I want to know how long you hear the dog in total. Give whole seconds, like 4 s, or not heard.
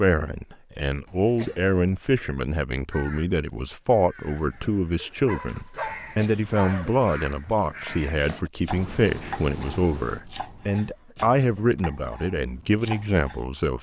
2 s.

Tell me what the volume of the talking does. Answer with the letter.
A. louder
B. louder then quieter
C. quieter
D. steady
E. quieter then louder
D.